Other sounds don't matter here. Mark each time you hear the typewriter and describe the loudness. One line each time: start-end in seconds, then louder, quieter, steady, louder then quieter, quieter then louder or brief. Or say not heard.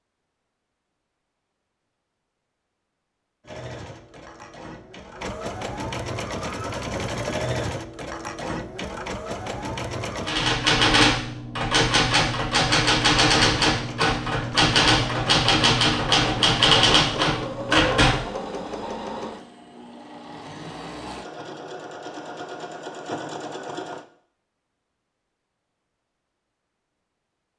10.2-18.1 steady.